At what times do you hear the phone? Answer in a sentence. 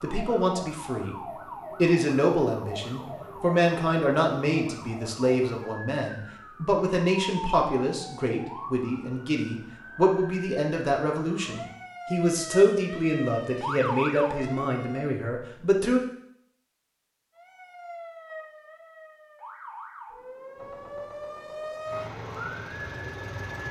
You can't hear the phone here.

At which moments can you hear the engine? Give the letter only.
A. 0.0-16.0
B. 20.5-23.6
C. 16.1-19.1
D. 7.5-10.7
B.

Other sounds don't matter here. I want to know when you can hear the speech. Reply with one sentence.
The speech can be heard from 0.0 to 16.0 s.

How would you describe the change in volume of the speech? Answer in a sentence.
The volume of the speech stays about the same.